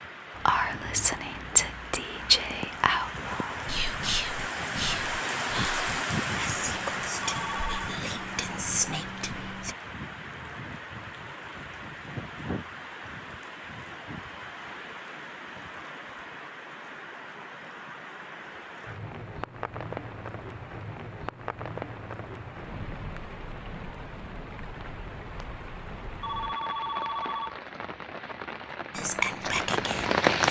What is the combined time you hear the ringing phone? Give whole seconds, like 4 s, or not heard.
2 s.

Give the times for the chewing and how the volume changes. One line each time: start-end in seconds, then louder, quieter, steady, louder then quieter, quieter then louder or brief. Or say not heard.
not heard.